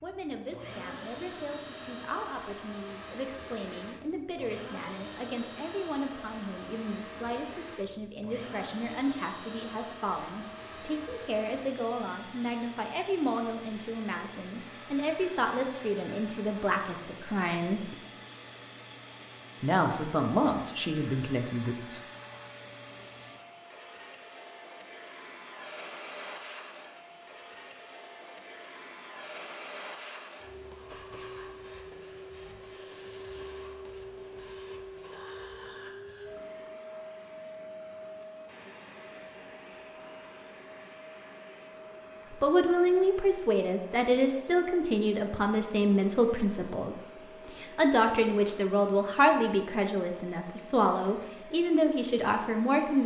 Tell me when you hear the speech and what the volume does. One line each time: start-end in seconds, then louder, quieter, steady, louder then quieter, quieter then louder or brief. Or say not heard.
0.0-17.9 louder
19.6-22.0 brief
42.3-53.0 steady.